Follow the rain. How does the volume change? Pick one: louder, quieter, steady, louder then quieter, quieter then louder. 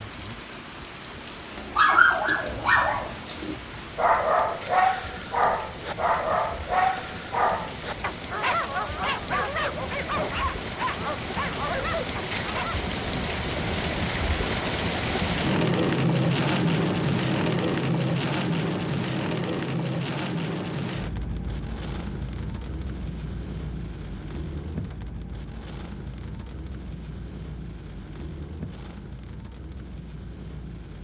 louder then quieter.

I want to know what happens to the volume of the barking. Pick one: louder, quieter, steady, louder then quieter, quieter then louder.
quieter.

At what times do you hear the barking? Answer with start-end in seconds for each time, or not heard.
1.5-12.8.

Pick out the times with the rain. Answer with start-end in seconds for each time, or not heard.
0.0-30.9.